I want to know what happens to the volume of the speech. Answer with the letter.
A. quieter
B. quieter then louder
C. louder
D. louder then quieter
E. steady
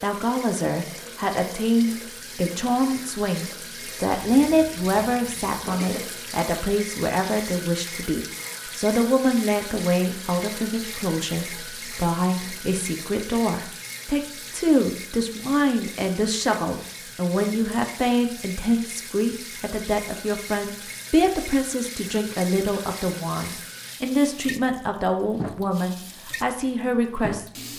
E.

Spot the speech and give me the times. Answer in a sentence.
The speech can be heard from 0.0 to 27.4 s.